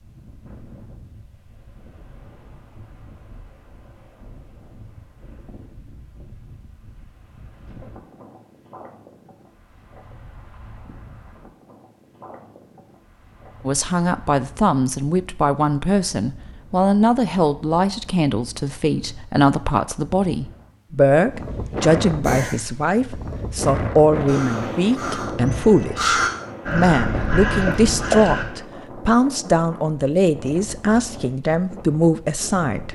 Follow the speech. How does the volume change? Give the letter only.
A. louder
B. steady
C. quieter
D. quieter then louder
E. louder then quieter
B.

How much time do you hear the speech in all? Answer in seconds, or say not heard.
19 s.